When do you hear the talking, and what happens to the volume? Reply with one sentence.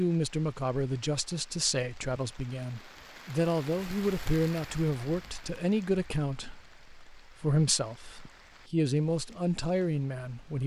The talking can be heard from 0.0 to 10.6 s, at a steady volume.